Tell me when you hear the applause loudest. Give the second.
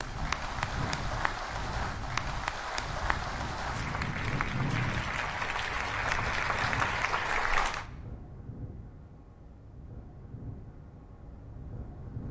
7 s.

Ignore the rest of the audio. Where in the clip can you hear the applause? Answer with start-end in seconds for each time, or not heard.
0.0-7.8.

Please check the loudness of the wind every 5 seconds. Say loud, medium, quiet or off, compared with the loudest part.
loud, medium, medium.